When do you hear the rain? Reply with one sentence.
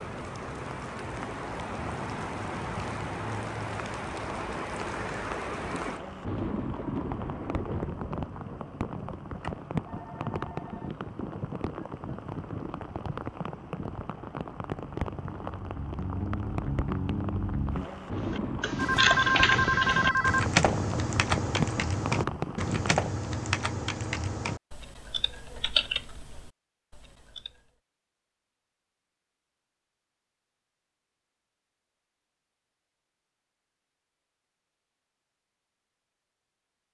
The rain can be heard from 0.0 to 23.0 s.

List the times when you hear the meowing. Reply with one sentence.
The meowing can't be heard in this clip.